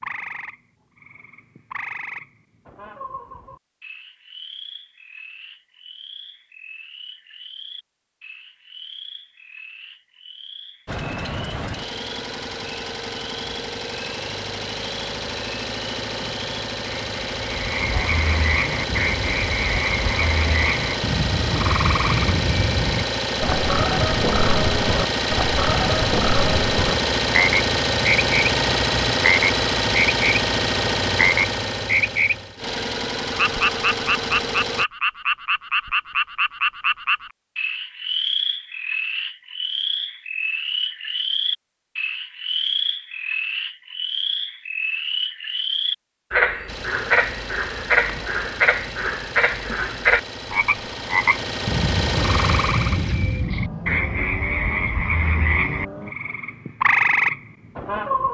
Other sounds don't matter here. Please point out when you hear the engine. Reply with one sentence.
You can hear the engine from 10.8 to 34.9 s and from 46.6 to 56.1 s.